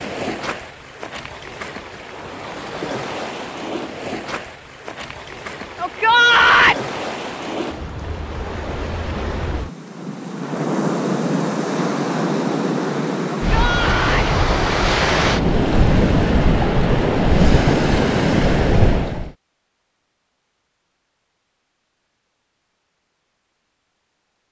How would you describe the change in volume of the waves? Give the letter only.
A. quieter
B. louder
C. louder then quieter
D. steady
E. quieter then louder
B.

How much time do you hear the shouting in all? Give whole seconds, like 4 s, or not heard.
2 s.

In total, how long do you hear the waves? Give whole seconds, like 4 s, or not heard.
19 s.